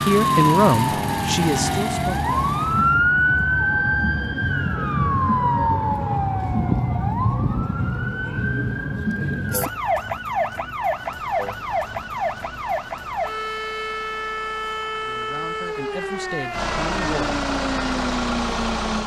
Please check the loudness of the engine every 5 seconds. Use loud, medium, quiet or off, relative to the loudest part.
loud, off, quiet, loud.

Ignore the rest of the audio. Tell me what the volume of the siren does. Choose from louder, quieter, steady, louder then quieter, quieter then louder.
quieter.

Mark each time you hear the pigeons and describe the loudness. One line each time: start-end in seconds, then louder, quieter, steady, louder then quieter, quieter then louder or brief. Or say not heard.
not heard.